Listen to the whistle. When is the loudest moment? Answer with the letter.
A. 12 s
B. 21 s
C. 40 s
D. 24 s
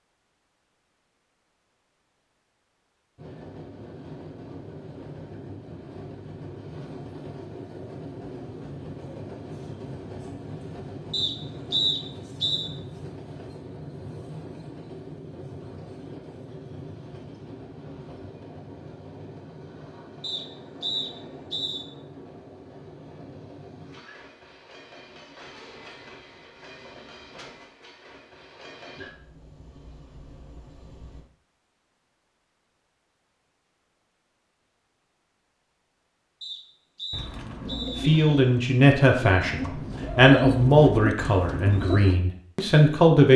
A.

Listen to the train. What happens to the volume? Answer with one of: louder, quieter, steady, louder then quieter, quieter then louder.
quieter.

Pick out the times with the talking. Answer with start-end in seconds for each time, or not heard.
38.0-43.3.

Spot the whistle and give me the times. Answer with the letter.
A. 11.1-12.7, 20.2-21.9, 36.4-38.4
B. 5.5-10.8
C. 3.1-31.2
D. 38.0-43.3
A.